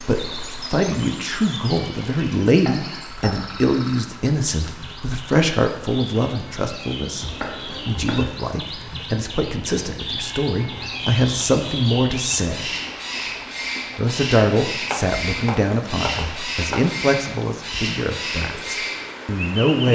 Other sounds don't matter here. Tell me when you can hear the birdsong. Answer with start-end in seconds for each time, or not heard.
0.0-19.9.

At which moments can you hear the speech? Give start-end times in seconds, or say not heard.
0.1-12.7, 13.9-19.9.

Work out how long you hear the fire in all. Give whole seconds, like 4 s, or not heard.
not heard.